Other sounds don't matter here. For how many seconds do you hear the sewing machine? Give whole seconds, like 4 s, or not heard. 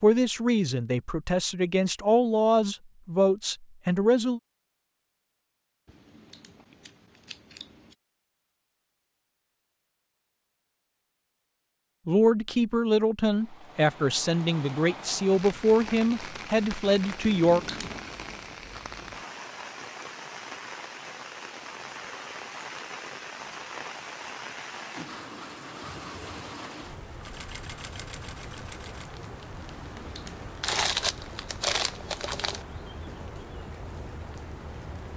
3 s.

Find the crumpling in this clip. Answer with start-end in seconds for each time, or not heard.
30.6-32.6.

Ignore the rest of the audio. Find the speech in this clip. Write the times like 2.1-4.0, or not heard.
0.0-4.4, 12.1-17.8.